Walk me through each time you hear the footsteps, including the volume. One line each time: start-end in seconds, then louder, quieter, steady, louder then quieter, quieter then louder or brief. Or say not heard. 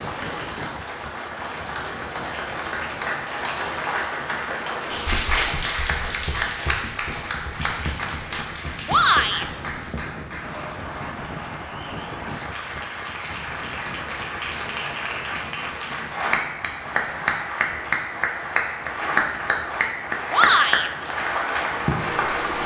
not heard.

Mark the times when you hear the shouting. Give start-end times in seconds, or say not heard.
8.8-9.4, 20.3-20.9.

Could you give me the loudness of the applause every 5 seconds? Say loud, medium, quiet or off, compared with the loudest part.
medium, loud, medium, loud, loud.